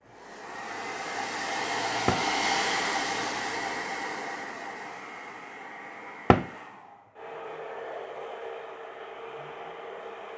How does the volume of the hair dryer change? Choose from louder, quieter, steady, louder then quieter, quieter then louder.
quieter.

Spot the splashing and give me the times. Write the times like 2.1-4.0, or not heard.
not heard.